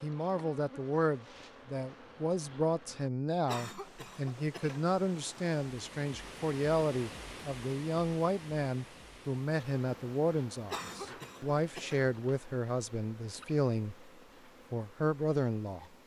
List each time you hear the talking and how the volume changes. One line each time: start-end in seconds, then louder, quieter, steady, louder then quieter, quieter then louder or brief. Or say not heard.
0.0-14.1 steady
14.7-15.8 brief.